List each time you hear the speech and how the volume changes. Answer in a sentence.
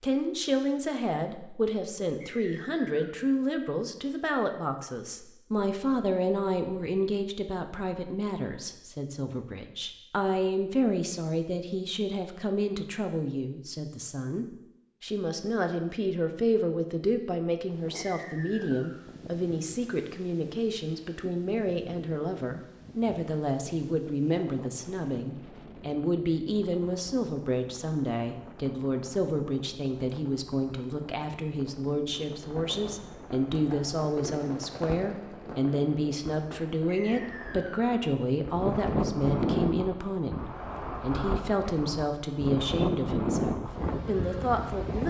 The speech can be heard from 0.0 to 45.0 s, at a steady volume.